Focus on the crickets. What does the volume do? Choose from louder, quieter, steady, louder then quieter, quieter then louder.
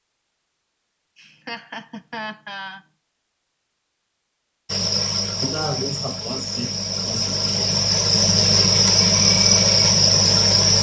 louder.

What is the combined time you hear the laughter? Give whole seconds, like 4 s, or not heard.
4 s.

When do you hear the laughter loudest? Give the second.
6 s.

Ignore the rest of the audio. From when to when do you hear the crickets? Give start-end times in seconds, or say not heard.
4.7-10.7.